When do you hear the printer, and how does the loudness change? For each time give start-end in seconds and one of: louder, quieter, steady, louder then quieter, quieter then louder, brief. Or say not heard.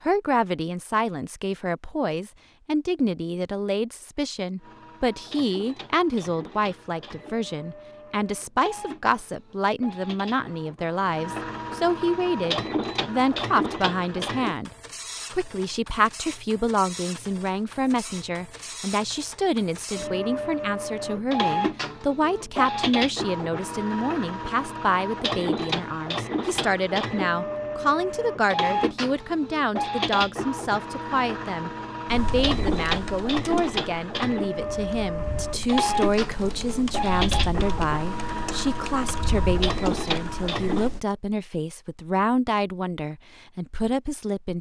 4.6-40.9 louder.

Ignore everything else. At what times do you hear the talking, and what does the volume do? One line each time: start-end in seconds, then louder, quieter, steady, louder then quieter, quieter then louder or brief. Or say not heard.
0.0-14.7 steady
15.3-44.5 steady.